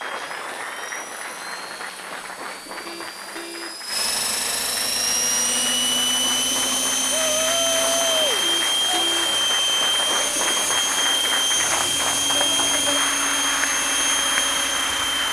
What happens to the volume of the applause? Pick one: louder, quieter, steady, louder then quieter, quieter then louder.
louder.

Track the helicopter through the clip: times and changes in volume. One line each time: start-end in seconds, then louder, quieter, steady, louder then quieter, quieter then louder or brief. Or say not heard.
0.0-15.2 louder.